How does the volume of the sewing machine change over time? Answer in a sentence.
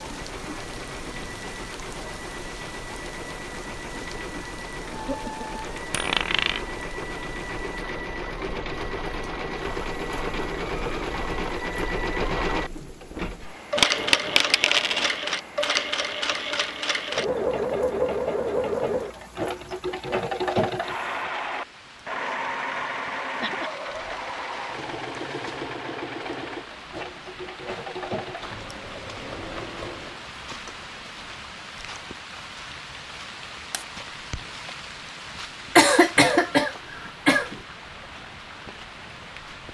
The loudness of the sewing machine goes up, then down.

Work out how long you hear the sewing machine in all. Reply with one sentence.
The sewing machine can be heard for 30 seconds in total.